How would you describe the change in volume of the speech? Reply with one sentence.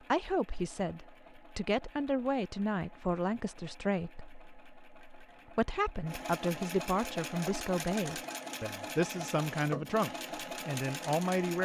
The loudness of the speech stays about the same.